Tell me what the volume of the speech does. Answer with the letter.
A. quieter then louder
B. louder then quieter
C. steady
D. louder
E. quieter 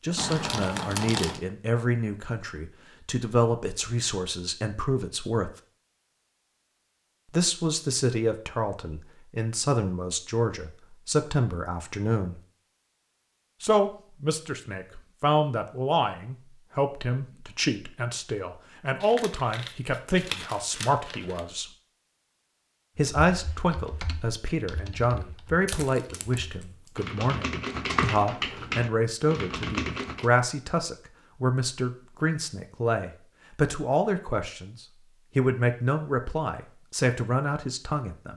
C.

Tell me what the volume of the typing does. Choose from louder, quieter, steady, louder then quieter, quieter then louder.
quieter then louder.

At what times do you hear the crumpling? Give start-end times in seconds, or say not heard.
0.1-1.4, 19.0-21.4, 25.6-26.9.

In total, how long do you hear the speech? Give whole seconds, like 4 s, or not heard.
34 s.